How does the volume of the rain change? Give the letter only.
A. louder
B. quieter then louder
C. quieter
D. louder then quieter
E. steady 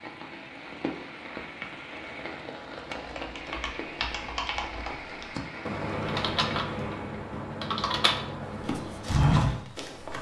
E.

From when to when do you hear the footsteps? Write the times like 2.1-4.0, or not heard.
8.7-10.1.